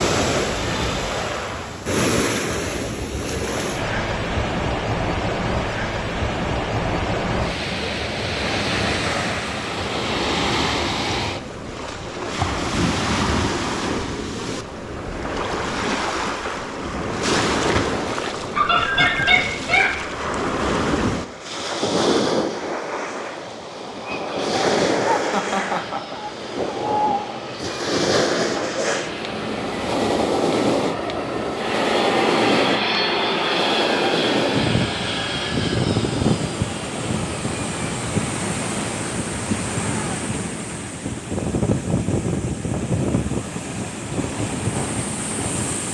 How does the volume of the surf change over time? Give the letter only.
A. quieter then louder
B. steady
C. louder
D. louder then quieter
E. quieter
B.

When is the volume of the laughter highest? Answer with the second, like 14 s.
19 s.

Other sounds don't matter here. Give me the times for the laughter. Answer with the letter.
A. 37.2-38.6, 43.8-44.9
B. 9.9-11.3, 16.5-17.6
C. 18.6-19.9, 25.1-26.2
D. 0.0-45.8
C.